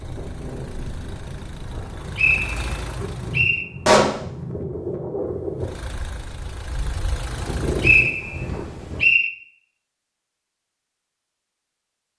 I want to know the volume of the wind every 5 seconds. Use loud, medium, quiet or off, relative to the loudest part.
loud, loud, off.